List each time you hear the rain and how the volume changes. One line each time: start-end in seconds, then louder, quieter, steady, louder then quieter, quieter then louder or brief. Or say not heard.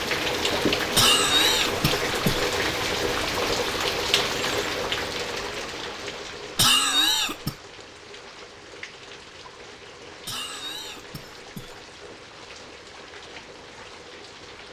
0.0-14.6 quieter.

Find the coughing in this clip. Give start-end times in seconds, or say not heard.
0.9-2.5, 6.5-7.5, 10.2-11.8.